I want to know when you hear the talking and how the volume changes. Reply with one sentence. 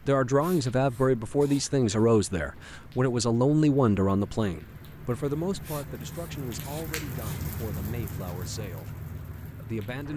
You can hear the talking from 0.1 to 10.1 s, getting quieter.